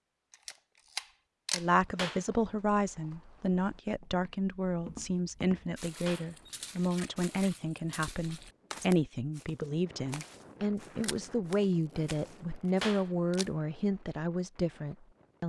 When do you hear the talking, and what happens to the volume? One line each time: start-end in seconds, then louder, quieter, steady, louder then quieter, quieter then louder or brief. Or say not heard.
1.5-15.4 steady.